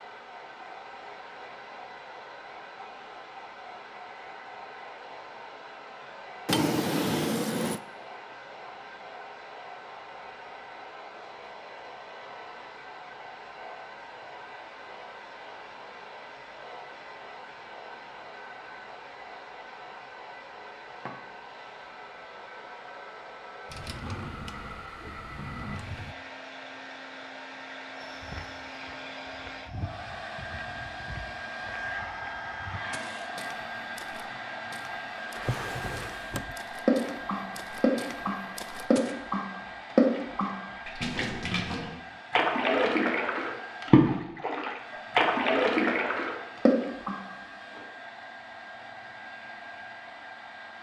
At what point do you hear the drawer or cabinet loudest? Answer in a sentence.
The volume of the drawer or cabinet peaks at 7 seconds.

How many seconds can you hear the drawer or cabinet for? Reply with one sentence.
You can hear the drawer or cabinet for 5 seconds altogether.